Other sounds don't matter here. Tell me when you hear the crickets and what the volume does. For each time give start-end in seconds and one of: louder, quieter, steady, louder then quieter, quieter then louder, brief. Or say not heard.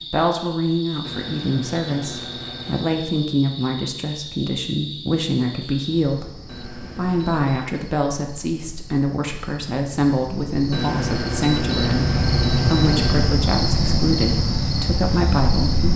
0.0-15.9 quieter then louder.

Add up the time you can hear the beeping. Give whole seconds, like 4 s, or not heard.
6 s.